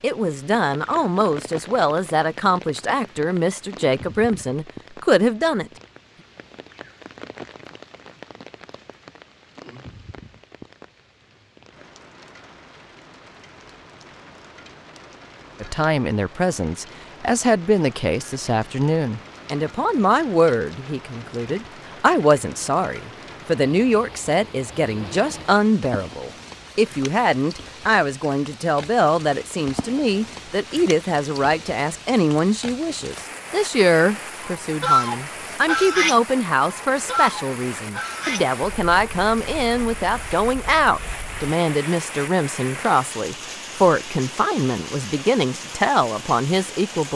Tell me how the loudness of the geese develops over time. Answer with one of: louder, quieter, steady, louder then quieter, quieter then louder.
quieter.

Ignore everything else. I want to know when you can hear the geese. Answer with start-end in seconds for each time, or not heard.
34.4-41.5.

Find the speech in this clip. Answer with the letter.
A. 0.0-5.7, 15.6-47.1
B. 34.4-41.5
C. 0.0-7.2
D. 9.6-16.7
A.